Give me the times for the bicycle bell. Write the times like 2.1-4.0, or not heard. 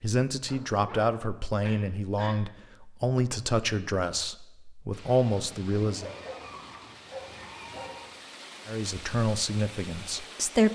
not heard.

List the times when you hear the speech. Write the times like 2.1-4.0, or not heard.
0.0-6.1, 8.7-10.7.